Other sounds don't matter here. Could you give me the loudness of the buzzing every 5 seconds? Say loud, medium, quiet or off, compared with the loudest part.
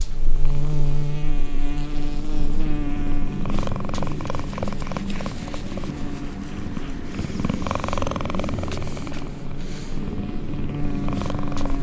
loud, medium, loud.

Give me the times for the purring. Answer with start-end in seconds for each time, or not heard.
0.0-11.7.